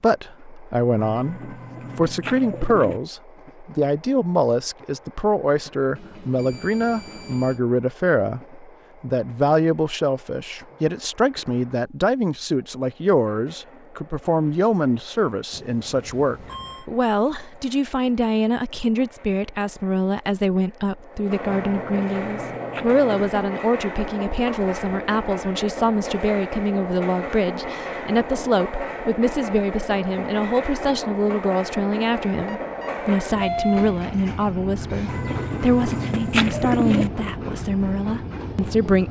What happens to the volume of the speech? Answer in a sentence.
The loudness of the speech stays about the same.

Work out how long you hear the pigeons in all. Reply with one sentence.
You can hear the pigeons for 6 seconds altogether.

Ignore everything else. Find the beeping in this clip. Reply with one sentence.
The beeping can be heard from 6.0 to 7.6 s, from 15.5 to 16.9 s and from 32.5 to 34.0 s.